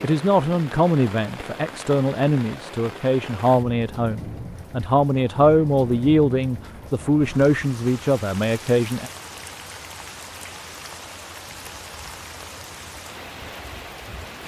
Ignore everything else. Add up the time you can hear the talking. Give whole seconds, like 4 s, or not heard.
9 s.